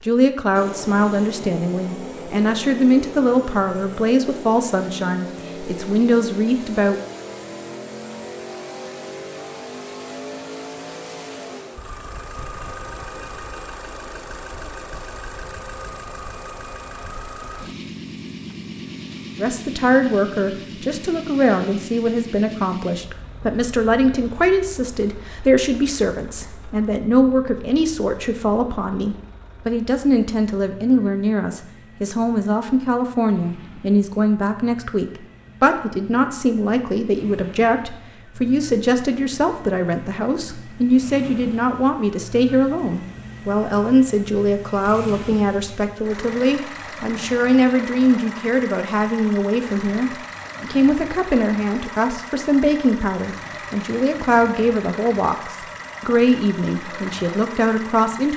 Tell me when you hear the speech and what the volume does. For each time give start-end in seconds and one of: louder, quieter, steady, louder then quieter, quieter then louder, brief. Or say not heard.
0.1-7.0 steady
19.4-58.3 steady.